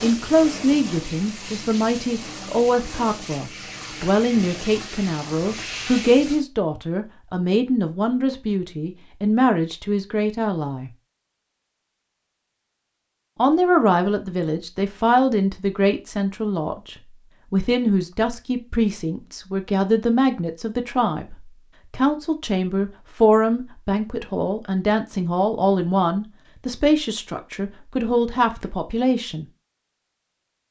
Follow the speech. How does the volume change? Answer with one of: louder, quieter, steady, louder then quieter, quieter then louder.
steady.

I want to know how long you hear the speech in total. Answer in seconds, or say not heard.
27 s.